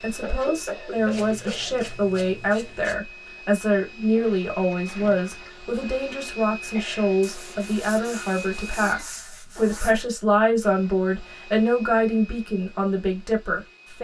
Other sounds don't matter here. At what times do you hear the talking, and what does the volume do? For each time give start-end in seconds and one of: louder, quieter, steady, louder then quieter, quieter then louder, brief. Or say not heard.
0.0-13.9 steady.